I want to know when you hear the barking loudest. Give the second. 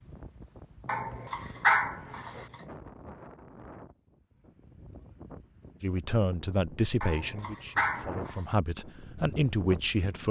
2 s.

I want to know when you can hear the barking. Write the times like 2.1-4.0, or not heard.
0.8-2.5, 7.0-8.4.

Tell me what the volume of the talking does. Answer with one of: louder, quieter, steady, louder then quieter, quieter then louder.
quieter then louder.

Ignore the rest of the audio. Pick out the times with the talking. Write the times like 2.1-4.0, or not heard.
5.8-10.2.